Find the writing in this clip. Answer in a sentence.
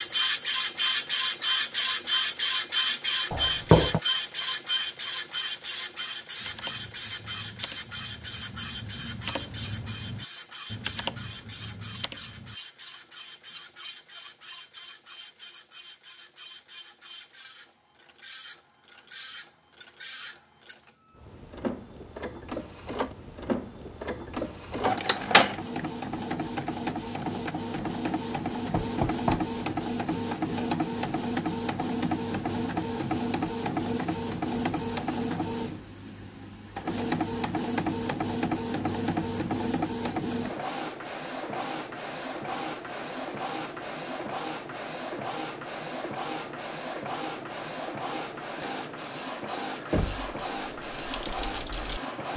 You can't hear the writing here.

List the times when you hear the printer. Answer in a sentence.
The printer can be heard from 0.0 to 52.3 s.